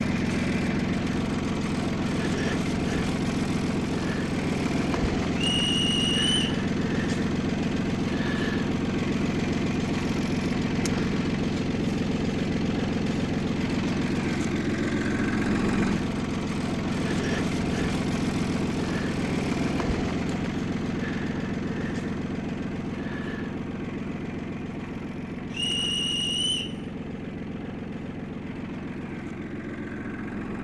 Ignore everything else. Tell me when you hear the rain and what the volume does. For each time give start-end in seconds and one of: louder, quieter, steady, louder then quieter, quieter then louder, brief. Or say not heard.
not heard.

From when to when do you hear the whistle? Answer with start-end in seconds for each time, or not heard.
5.3-6.6, 25.5-26.8.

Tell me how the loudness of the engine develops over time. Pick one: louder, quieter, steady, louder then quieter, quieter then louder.
quieter.